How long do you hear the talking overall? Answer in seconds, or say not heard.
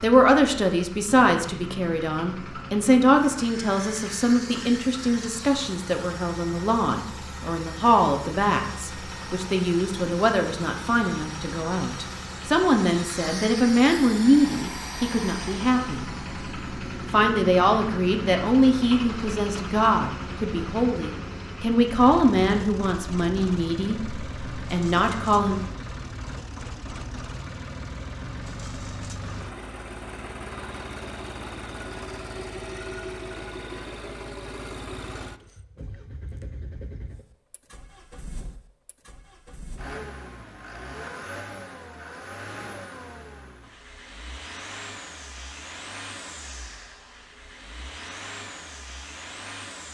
25 s.